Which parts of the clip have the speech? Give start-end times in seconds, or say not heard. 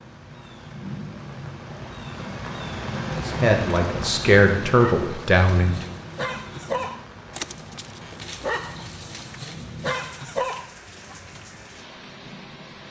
3.2-5.8.